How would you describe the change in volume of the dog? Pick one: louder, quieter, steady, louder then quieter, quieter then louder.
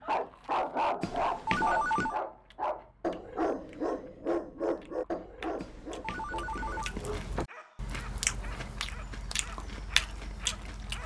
quieter.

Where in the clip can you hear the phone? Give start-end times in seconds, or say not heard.
1.0-2.1, 5.6-7.5.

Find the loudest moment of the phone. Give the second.
2 s.